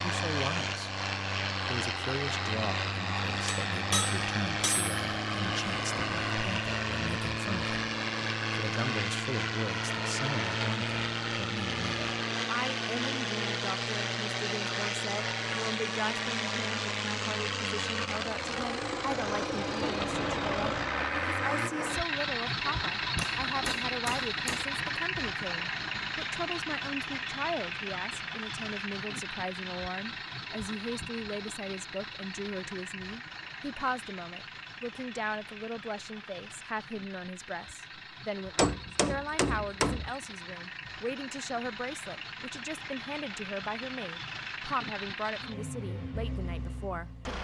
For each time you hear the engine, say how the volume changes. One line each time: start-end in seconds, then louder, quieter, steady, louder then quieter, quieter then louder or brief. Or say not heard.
0.0-47.3 quieter.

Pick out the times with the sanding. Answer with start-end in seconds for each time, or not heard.
not heard.